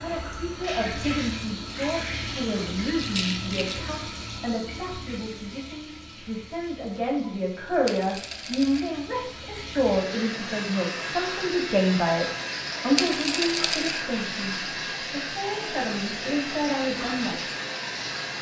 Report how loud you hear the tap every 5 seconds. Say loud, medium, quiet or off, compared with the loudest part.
loud, medium, loud, loud.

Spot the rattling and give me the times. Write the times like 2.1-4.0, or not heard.
3.0-3.8, 7.8-8.9, 12.9-14.1.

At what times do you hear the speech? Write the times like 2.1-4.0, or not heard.
0.0-17.4.